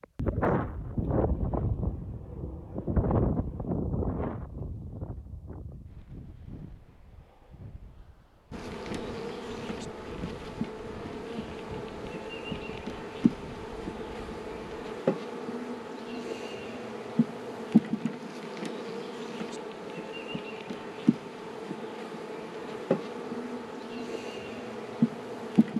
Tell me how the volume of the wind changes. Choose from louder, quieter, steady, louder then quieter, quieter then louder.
quieter.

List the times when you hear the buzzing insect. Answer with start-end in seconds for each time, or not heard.
8.5-25.7.